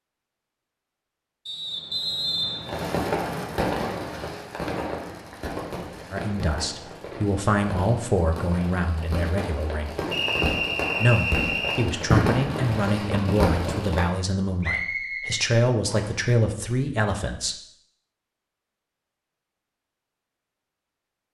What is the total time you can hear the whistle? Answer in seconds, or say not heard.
5 s.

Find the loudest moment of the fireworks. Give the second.
12 s.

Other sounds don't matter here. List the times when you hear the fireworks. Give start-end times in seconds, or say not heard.
2.6-14.1.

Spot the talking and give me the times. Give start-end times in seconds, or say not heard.
6.1-9.9, 11.0-17.6.